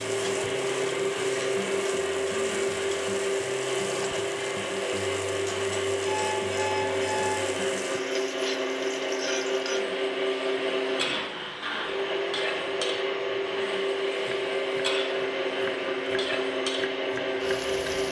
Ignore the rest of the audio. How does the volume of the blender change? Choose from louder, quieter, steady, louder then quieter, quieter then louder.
steady.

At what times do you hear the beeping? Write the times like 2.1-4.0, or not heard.
6.0-7.5.